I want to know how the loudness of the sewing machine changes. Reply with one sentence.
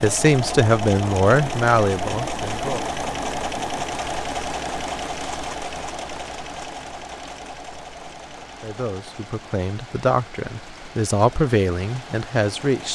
The volume of the sewing machine goes down.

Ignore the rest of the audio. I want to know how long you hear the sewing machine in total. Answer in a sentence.
You can hear the sewing machine for 13 seconds altogether.